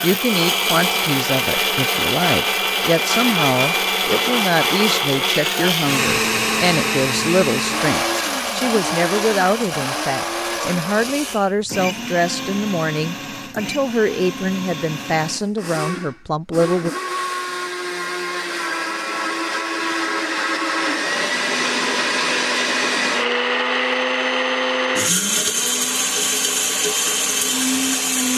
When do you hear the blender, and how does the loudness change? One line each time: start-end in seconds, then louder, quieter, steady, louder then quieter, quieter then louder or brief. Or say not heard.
0.0-28.3 quieter then louder.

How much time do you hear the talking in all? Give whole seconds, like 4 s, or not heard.
17 s.